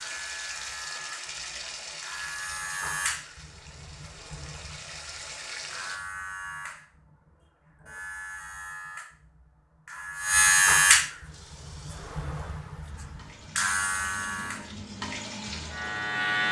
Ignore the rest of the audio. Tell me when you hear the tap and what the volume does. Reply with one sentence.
The tap can be heard from 0.0 to 6.0 s, getting quieter then louder; and from 11.2 to 16.4 s, getting louder.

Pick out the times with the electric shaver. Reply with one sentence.
The electric shaver can be heard from 0.0 to 16.4 s.